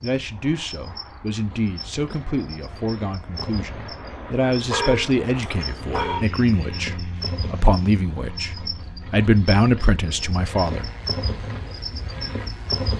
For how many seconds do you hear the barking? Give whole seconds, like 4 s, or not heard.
2 s.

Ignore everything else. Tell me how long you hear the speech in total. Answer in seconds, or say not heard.
11 s.